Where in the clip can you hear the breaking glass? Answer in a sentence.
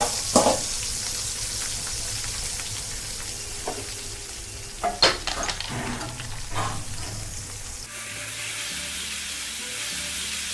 The breaking glass can be heard from 5.0 to 6.4 s.